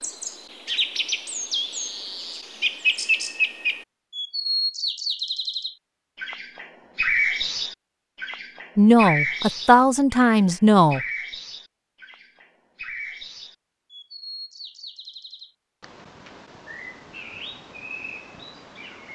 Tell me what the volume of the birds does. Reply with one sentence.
The loudness of the birds goes down.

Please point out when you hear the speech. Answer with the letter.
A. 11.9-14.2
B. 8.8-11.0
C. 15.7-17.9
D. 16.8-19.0
B.